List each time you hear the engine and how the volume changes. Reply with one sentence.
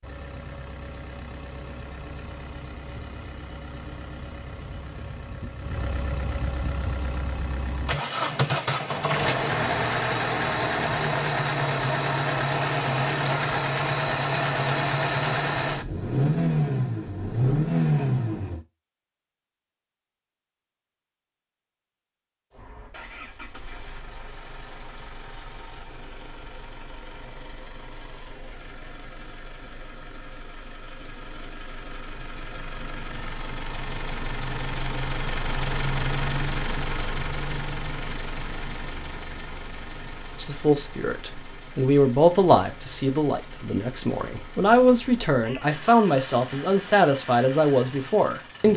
You can hear the engine from 0.0 to 18.6 s, getting louder; and from 22.5 to 48.7 s, getting louder then quieter.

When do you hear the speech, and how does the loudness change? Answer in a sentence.
The speech can be heard from 40.4 to 48.7 s, at a steady volume.